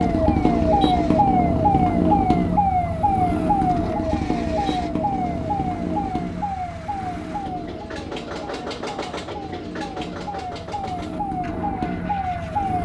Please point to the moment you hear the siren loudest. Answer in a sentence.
The loudest moment of the siren is at 2 seconds.